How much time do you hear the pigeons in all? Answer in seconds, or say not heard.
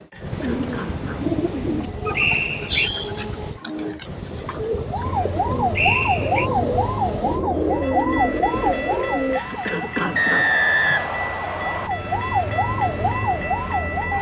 9 s.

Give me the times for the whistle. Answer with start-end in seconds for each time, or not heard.
2.1-2.9, 5.8-6.5, 10.2-11.9.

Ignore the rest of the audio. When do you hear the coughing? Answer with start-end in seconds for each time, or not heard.
0.1-1.3, 9.3-11.1.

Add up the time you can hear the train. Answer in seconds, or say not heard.
14 s.